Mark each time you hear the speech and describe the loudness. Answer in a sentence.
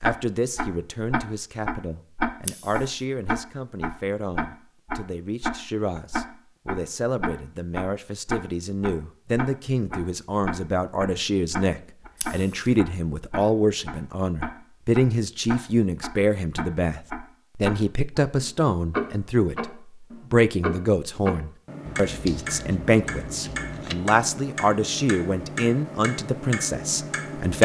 The speech can be heard from 0.0 to 27.5 s, getting louder.